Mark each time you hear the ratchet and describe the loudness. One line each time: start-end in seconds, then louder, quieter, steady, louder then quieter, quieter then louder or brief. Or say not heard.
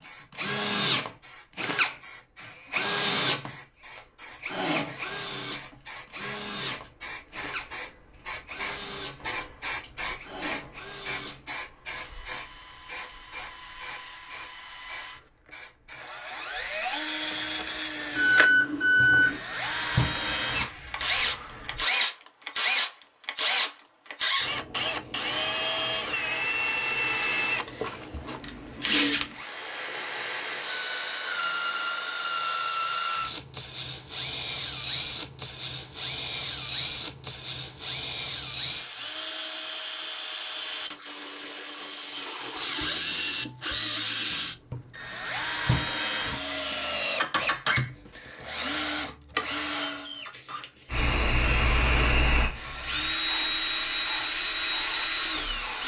not heard.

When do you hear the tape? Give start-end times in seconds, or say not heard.
not heard.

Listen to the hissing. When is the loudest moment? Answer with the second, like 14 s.
52 s.